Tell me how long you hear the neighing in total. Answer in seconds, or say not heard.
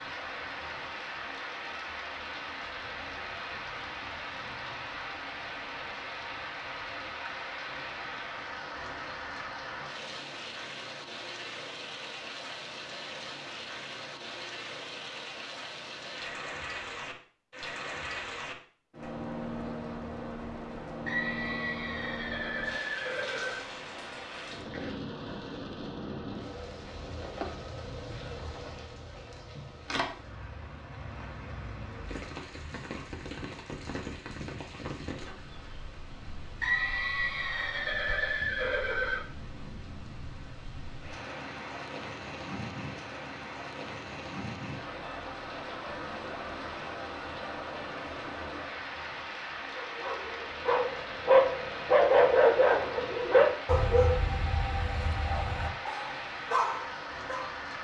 5 s.